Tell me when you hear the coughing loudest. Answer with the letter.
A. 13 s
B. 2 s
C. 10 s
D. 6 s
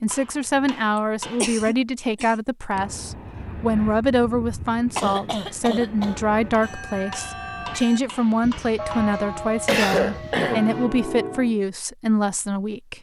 C.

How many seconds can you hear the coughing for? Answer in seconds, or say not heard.
4 s.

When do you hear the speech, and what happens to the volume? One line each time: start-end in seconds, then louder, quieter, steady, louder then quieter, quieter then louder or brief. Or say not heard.
0.0-12.9 steady.